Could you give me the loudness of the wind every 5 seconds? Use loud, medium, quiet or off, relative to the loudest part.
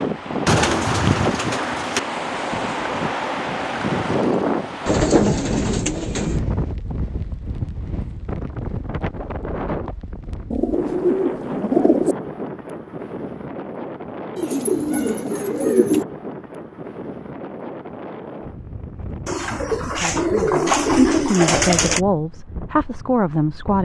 loud, medium, medium, medium, quiet.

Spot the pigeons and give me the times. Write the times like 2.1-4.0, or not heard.
0.5-2.0, 4.8-6.4, 10.5-12.2, 14.3-16.1, 19.2-22.0.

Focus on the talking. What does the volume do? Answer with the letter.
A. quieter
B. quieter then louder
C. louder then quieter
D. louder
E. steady
D.